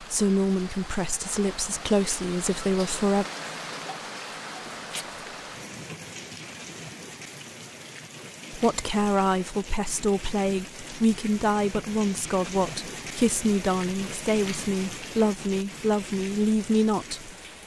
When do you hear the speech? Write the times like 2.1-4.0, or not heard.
0.0-3.2, 8.5-17.3.